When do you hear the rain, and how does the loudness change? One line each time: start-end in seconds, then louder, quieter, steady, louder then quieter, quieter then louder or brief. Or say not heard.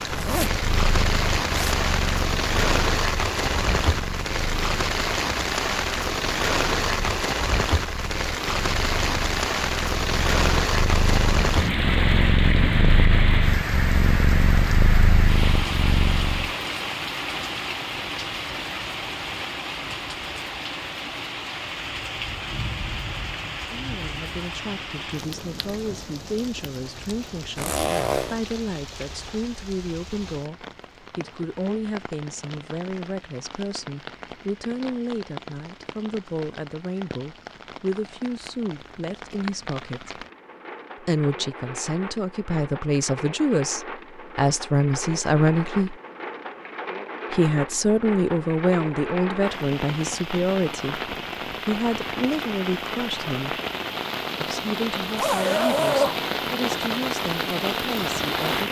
0.0-58.6 quieter then louder.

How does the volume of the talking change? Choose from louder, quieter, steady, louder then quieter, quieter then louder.
louder then quieter.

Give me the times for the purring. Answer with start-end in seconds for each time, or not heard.
0.0-16.5.